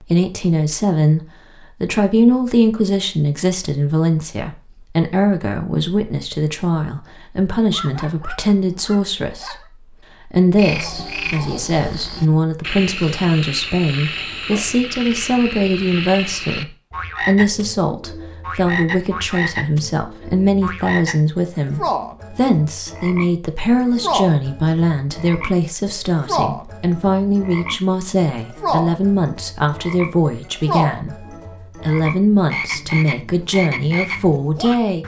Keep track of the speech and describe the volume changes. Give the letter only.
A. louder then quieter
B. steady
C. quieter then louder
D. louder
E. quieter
B.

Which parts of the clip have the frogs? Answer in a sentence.
The frogs can be heard from 10.6 to 35.0 s.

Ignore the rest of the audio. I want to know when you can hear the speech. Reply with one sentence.
The speech can be heard from 0.0 to 9.6 s and from 10.2 to 35.0 s.